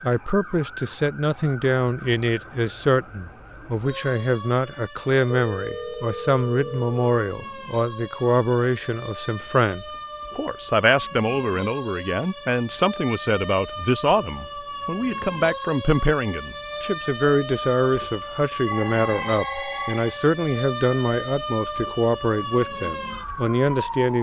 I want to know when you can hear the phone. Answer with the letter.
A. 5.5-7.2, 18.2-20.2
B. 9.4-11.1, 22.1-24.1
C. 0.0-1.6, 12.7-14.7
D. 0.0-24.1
A.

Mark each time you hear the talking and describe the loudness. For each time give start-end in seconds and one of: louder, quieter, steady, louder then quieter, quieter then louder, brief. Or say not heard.
0.0-24.1 steady.